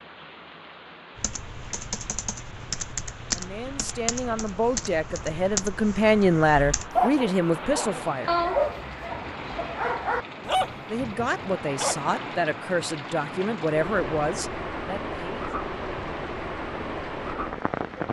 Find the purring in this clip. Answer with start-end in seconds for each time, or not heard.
not heard.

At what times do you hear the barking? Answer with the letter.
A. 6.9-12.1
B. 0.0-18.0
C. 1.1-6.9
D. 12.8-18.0
A.